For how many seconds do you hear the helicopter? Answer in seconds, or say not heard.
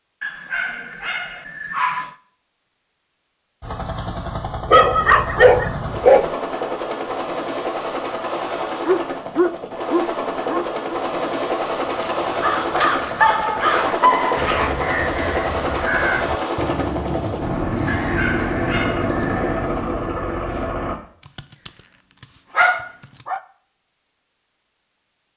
17 s.